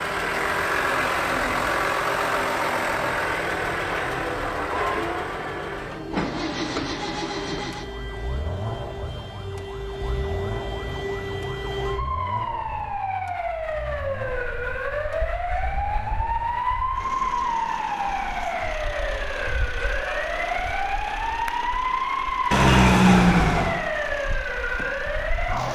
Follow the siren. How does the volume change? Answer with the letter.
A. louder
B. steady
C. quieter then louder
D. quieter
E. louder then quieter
A.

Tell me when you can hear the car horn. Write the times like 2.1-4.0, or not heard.
22.5-23.8.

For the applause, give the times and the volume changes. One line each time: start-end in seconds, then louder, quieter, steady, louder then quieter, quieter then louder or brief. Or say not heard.
not heard.